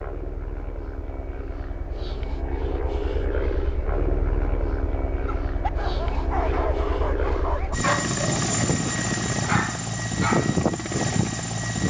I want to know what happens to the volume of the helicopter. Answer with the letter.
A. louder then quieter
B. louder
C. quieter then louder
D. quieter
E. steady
B.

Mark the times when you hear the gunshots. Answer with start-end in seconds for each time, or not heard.
not heard.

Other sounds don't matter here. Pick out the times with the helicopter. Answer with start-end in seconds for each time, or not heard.
0.0-11.8.